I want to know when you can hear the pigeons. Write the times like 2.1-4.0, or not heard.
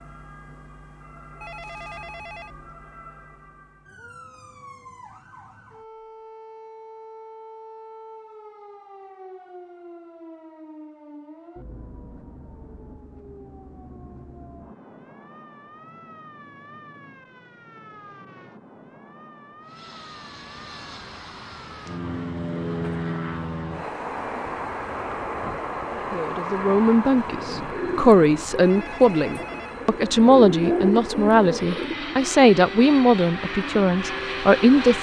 27.1-31.9.